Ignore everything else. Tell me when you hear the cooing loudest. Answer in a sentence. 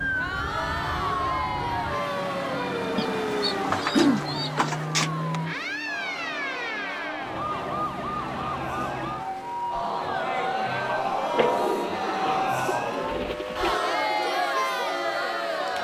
The loudest moment of the cooing is at 4 seconds.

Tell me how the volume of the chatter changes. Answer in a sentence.
The volume of the chatter goes down, then up.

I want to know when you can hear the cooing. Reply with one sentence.
You can hear the cooing from 3.0 to 5.2 s and from 11.3 to 13.8 s.